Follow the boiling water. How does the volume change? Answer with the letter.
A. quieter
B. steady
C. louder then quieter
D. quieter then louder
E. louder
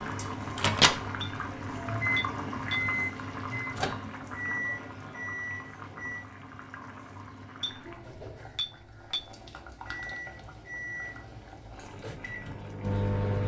A.